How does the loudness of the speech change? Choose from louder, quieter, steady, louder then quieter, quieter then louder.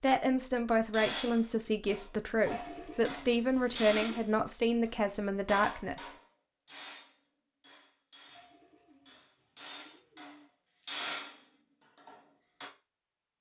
steady.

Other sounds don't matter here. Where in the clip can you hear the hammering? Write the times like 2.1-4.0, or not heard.
0.9-12.7.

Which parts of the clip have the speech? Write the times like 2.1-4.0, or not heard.
0.0-6.2.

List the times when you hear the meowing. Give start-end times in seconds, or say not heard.
not heard.